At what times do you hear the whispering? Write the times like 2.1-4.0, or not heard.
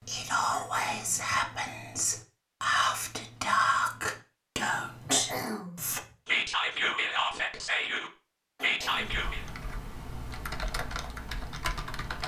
0.1-9.4.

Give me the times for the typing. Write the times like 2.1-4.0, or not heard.
8.9-12.2.